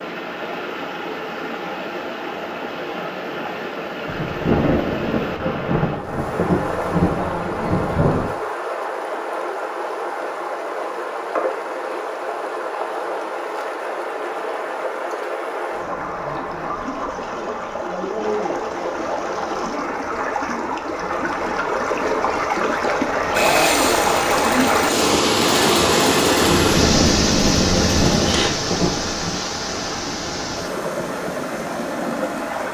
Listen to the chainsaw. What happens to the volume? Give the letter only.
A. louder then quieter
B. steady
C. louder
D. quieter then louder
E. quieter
B.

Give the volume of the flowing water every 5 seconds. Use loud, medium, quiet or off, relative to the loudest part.
medium, medium, medium, medium, loud, loud, medium.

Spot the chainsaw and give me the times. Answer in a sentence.
You can hear the chainsaw from 23.3 to 28.5 s.